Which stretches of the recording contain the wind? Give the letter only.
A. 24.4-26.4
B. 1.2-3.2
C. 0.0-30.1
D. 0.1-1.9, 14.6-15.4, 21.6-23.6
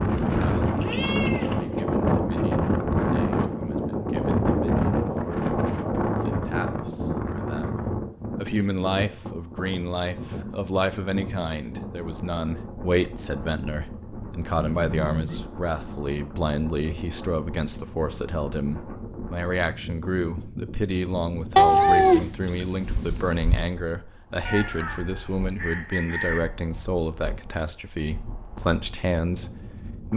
C.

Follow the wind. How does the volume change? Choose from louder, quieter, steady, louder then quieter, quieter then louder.
quieter.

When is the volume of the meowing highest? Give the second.
22 s.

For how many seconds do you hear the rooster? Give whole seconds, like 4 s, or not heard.
2 s.